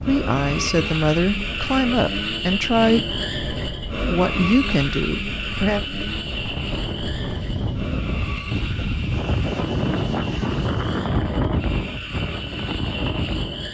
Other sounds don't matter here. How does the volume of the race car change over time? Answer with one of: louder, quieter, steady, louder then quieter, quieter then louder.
quieter.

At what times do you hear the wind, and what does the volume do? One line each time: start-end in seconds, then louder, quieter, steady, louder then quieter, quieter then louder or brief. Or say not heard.
0.0-13.7 louder.